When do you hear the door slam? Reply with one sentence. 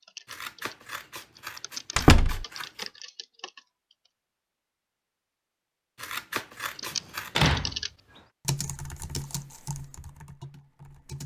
The door slam can be heard from 1.9 to 2.5 s and from 7.3 to 7.8 s.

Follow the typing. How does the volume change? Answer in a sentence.
The loudness of the typing goes up, then down.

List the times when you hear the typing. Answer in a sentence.
The typing can be heard from 0.0 to 4.0 s and from 6.8 to 11.2 s.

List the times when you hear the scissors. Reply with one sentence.
You can hear the scissors from 0.2 to 2.9 s and from 6.0 to 7.5 s.